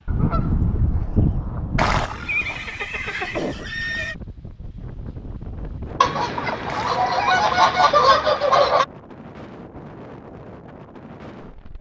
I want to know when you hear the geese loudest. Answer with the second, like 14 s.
8 s.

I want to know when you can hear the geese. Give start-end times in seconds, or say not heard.
0.1-2.1, 6.0-8.8.